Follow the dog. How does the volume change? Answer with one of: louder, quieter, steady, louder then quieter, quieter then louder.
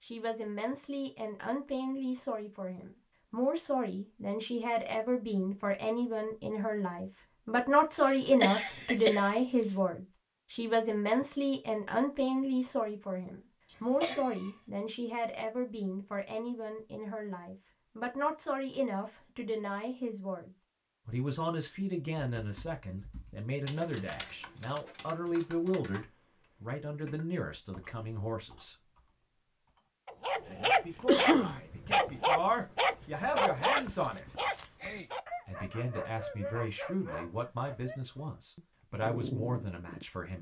quieter.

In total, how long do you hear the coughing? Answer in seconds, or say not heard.
3 s.